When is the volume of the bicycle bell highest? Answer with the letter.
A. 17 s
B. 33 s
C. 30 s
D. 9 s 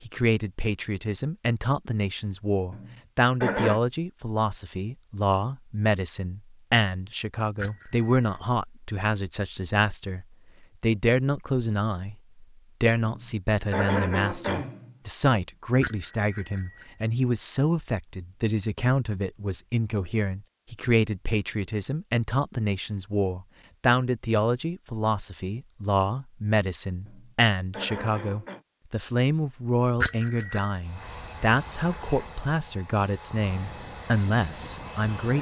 C.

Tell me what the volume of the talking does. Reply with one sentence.
The volume of the talking stays about the same.